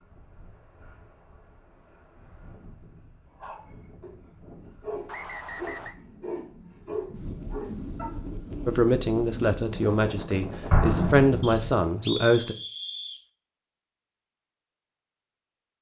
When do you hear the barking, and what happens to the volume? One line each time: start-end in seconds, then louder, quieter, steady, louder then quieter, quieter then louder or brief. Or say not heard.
3.2-8.2 louder.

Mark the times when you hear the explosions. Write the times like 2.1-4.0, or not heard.
10.7-11.8.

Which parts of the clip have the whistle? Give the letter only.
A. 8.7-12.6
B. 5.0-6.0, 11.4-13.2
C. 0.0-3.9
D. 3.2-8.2
B.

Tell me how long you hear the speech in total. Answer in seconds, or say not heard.
4 s.